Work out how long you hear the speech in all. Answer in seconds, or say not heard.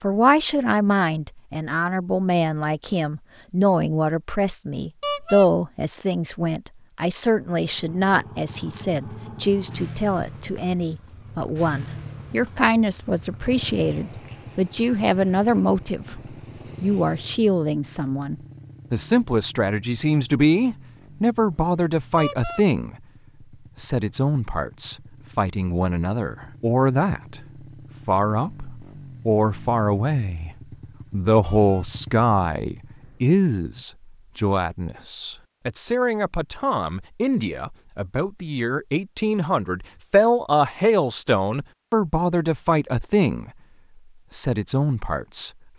43 s.